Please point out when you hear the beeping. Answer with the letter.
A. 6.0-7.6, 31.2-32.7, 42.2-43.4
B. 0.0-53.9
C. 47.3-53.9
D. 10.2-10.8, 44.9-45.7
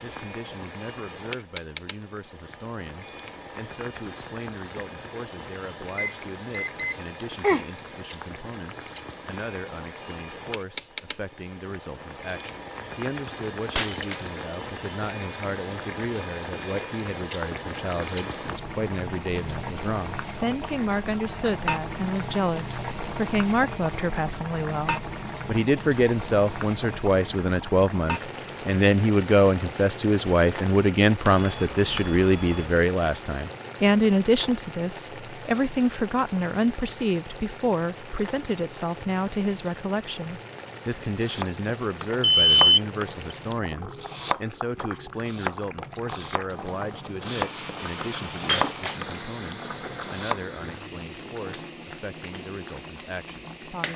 A.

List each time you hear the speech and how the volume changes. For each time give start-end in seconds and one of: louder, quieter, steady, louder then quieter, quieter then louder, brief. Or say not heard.
0.0-53.9 louder then quieter.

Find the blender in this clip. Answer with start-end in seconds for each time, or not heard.
47.3-53.9.